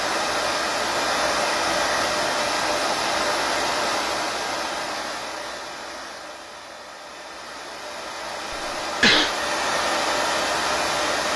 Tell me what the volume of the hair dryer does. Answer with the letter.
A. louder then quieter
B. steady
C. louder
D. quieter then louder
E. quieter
D.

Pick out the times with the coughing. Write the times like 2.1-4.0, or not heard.
8.5-9.3.